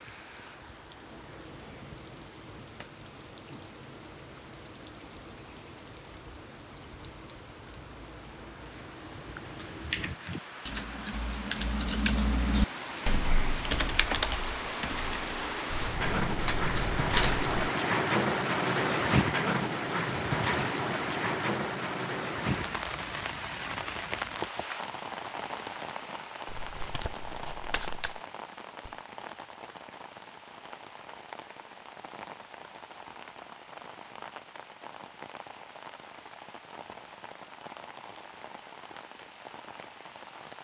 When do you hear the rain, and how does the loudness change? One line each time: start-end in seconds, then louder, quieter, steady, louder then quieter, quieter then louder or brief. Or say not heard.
0.0-40.6 louder then quieter.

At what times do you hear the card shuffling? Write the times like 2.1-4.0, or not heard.
15.7-17.6, 26.4-28.2.